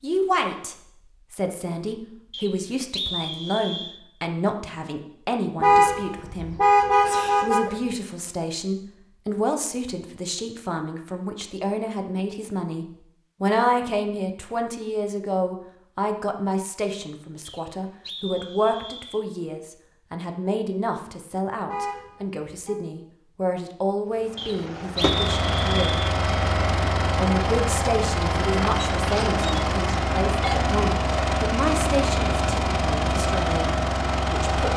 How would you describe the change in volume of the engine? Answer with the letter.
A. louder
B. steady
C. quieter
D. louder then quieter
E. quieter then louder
B.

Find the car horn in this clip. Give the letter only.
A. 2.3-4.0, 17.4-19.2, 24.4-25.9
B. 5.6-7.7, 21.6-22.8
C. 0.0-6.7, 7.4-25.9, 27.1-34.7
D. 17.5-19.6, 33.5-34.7
B.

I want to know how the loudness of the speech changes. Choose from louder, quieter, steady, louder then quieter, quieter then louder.
steady.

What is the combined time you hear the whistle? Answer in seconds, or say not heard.
5 s.